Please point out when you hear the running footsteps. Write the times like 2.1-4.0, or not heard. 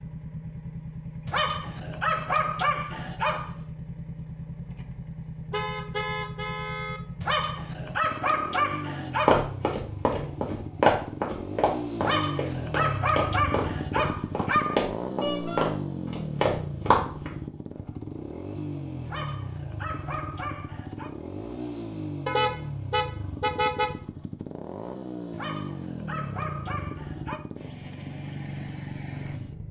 9.2-17.3.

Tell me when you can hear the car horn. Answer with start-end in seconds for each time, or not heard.
5.5-7.0, 15.2-15.7, 22.2-23.9.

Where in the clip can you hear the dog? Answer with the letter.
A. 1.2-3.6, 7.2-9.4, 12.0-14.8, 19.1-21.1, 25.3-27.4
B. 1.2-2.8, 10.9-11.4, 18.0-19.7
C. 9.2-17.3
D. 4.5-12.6
A.